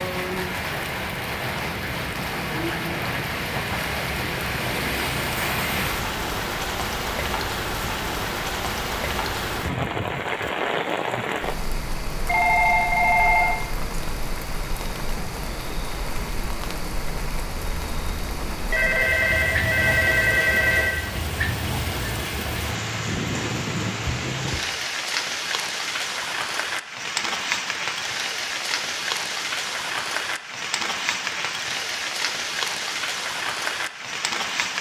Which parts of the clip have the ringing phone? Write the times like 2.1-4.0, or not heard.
12.2-13.6, 18.7-21.0.